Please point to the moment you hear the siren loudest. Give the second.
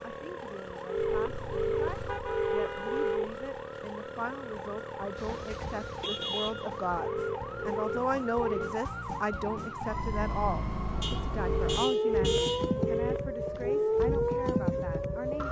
14 s.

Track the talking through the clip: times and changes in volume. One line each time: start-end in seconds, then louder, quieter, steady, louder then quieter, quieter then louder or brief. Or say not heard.
0.0-15.4 louder then quieter.